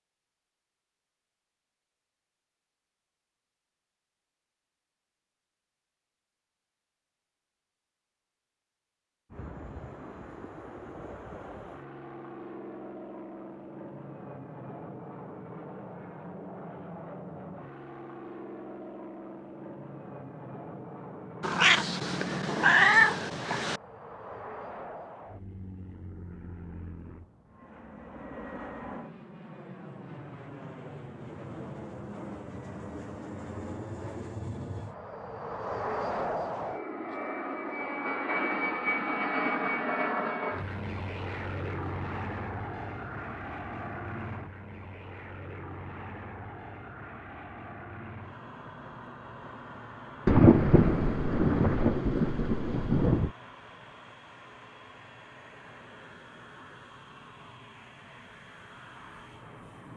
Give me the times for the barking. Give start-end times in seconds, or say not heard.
not heard.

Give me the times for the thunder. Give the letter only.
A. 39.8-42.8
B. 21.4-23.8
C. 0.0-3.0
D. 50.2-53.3
D.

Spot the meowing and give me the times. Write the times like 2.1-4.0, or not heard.
21.4-23.8.